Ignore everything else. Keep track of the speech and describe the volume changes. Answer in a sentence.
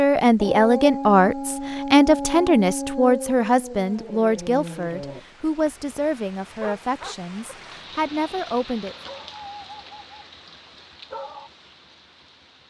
The loudness of the speech goes down.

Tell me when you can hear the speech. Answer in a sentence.
The speech can be heard from 0.0 to 8.9 s.